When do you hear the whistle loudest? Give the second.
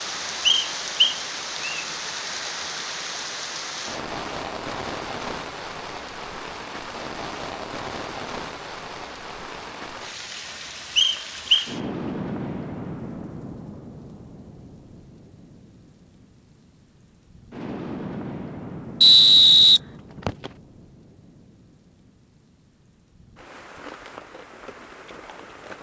19 s.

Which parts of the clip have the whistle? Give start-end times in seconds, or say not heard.
0.5-1.8, 10.9-11.7, 19.0-20.5.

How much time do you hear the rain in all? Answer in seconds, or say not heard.
26 s.